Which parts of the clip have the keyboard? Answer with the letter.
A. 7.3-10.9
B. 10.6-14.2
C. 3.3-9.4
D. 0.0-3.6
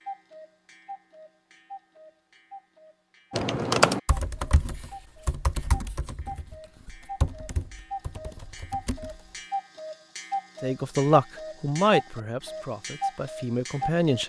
C.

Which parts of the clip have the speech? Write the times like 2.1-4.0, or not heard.
10.6-14.2.